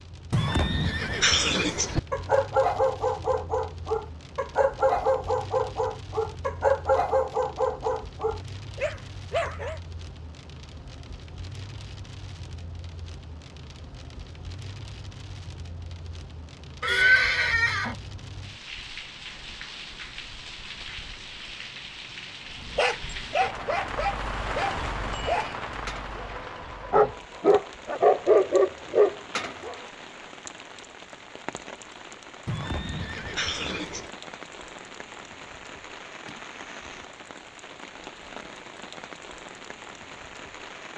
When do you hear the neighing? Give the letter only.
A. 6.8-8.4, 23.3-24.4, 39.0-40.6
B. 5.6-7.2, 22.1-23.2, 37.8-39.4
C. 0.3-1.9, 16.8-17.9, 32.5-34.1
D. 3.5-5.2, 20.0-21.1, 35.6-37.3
C.